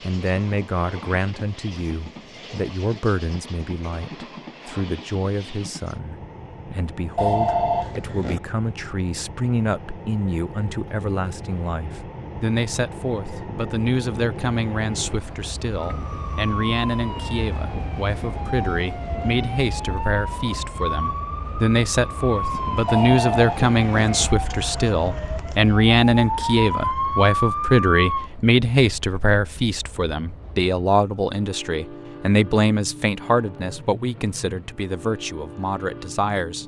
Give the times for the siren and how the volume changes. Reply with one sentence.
The siren can be heard from 15.8 to 28.3 s, getting louder.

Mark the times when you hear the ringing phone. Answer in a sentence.
You can hear the ringing phone from 7.2 to 8.4 s and from 22.9 to 24.1 s.